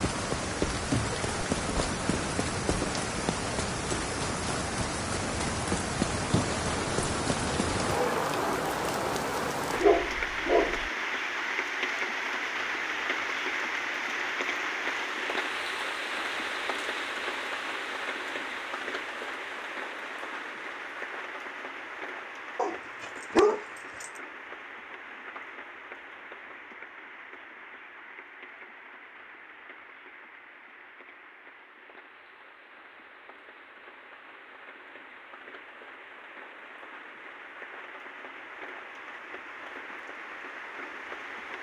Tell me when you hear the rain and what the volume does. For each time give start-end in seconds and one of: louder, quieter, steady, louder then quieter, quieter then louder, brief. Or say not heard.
0.0-41.5 quieter.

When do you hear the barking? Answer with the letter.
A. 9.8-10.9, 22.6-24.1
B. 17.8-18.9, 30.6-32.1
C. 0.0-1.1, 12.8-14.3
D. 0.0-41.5
A.